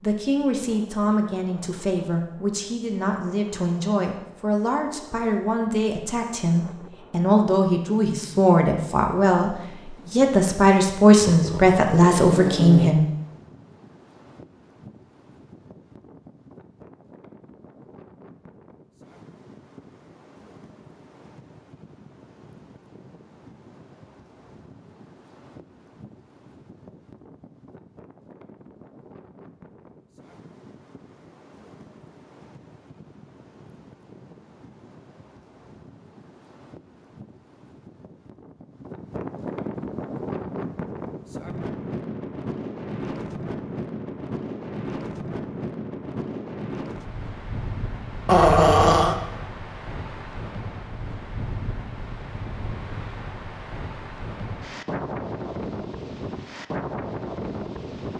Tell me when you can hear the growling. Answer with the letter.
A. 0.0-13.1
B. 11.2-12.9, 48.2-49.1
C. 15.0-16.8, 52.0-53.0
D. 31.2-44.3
B.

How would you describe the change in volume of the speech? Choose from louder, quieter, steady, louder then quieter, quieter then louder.
louder.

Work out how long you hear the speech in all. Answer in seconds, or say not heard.
13 s.